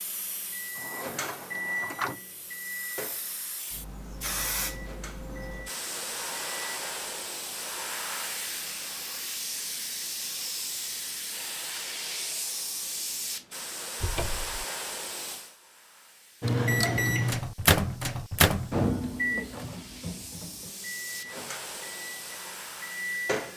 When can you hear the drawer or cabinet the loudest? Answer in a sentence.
The volume of the drawer or cabinet peaks at 2 seconds.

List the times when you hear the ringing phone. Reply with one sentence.
The ringing phone can't be heard in this clip.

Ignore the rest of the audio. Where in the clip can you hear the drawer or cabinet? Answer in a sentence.
You can hear the drawer or cabinet from 0.8 to 2.2 s and from 14.0 to 14.7 s.